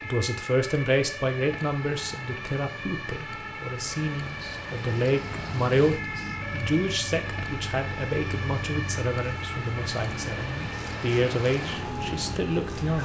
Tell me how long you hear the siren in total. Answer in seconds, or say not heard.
13 s.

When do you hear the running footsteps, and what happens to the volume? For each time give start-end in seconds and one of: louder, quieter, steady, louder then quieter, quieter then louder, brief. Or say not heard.
not heard.